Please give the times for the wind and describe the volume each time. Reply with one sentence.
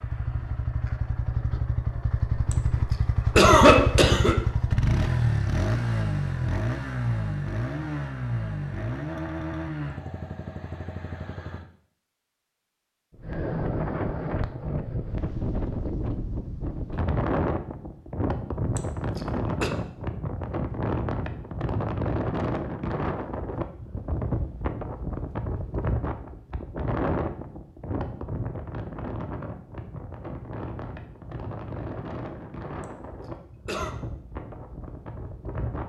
The wind can be heard from 13.2 to 35.8 s, getting quieter.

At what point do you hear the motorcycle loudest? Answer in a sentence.
The loudest moment of the motorcycle is at 5 seconds.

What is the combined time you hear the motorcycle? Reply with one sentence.
You can hear the motorcycle for 12 seconds altogether.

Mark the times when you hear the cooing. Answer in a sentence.
You can't hear the cooing here.